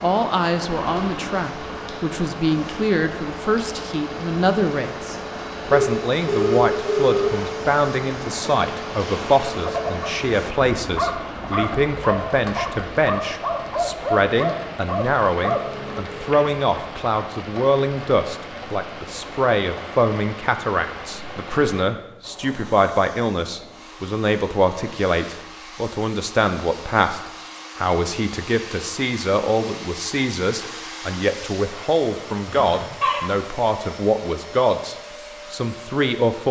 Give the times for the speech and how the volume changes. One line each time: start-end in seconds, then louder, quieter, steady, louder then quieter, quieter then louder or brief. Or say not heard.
0.0-36.4 steady.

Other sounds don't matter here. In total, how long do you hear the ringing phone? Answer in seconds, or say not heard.
3 s.